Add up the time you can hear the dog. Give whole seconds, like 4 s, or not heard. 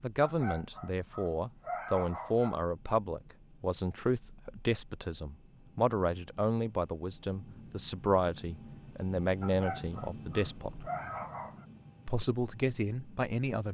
5 s.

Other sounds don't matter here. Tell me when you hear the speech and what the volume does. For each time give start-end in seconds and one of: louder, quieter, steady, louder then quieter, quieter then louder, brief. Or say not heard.
0.0-10.9 steady
12.1-13.6 brief.